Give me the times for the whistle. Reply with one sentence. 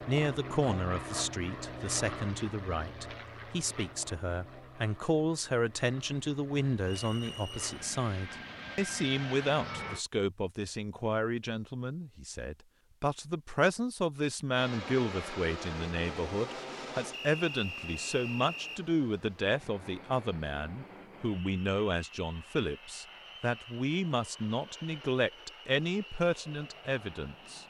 The whistle can be heard from 6.8 to 7.7 s and from 17.1 to 18.8 s.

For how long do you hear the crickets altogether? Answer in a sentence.
The crickets can't be heard in this clip.